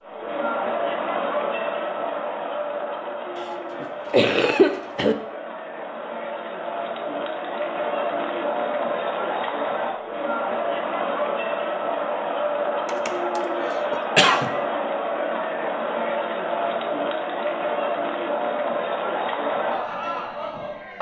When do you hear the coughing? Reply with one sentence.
The coughing can be heard from 3.8 to 5.2 s and from 12.8 to 14.5 s.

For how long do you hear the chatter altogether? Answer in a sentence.
You can hear the chatter for 21 seconds altogether.